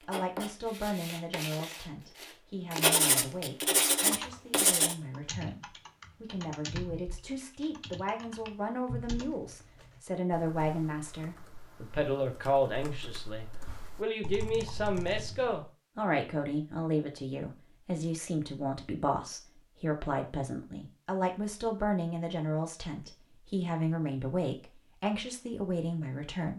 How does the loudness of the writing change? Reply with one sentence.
The volume of the writing goes up.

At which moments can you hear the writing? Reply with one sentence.
You can hear the writing from 0.0 to 5.0 s.